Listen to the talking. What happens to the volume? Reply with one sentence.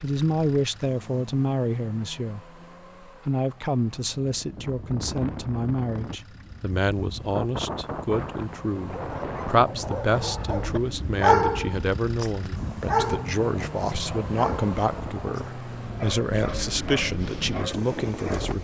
The loudness of the talking stays about the same.